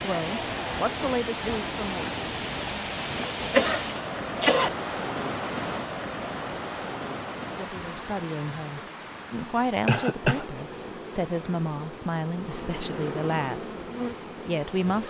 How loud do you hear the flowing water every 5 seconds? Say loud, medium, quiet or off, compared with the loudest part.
loud, loud, quiet.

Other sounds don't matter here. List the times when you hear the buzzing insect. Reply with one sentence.
The buzzing insect can be heard from 10.2 to 15.0 s.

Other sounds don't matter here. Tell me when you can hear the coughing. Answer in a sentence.
You can hear the coughing from 2.8 to 4.7 s and from 9.8 to 10.4 s.